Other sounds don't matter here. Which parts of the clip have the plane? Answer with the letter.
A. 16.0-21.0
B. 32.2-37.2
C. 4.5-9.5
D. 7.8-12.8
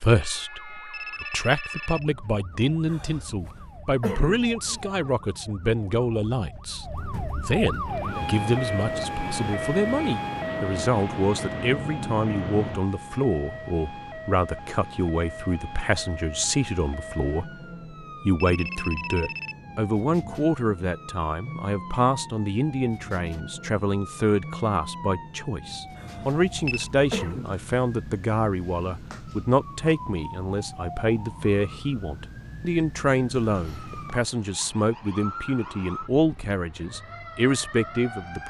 D.